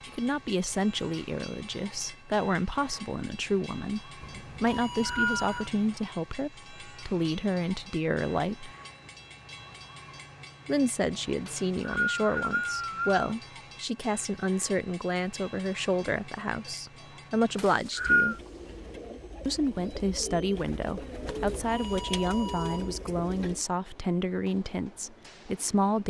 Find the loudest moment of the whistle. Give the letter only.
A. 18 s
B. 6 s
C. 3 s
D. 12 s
A.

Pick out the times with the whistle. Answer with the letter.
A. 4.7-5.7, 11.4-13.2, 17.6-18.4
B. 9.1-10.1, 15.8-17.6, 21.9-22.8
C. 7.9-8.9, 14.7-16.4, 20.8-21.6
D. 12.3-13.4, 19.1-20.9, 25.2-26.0
A.